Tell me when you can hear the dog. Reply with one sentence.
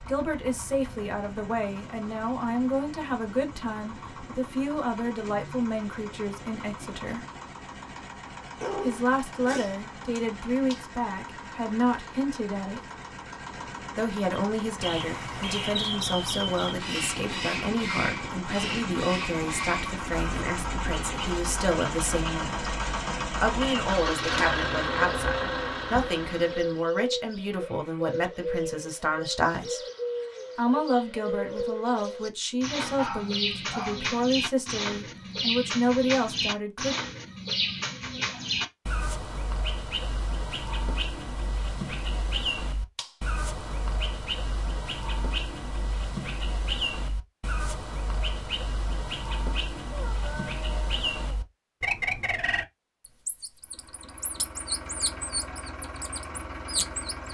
The dog can be heard from 8.6 to 10.2 s, from 32.8 to 34.1 s and from 49.9 to 51.5 s.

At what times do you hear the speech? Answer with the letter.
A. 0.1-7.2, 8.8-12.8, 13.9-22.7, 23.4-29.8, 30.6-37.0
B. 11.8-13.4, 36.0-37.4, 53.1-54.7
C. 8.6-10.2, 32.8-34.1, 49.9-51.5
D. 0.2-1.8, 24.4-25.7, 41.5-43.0
A.